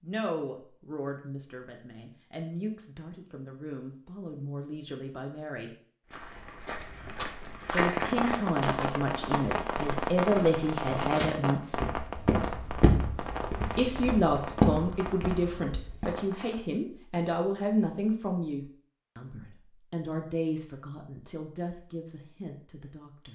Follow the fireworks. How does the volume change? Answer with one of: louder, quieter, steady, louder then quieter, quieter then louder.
quieter.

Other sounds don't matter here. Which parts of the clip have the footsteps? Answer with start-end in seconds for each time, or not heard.
6.1-16.2.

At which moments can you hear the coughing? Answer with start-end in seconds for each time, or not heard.
not heard.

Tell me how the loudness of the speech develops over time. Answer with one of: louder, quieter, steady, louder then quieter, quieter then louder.
louder then quieter.